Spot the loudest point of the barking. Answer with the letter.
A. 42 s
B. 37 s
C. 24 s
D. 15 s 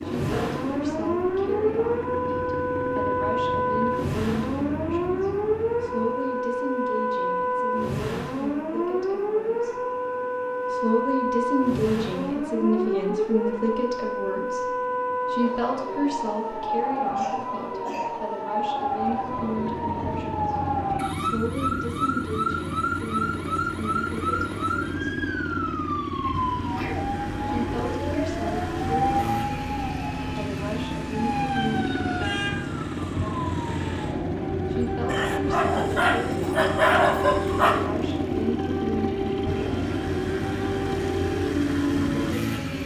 B.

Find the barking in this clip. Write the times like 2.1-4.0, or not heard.
35.0-37.8.